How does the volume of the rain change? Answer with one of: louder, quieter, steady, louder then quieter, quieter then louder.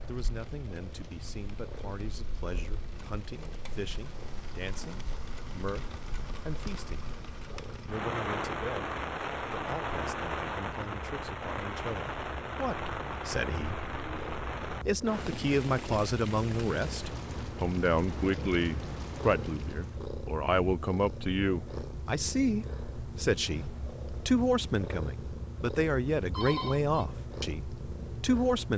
louder then quieter.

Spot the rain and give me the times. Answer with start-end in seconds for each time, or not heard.
0.0-20.1.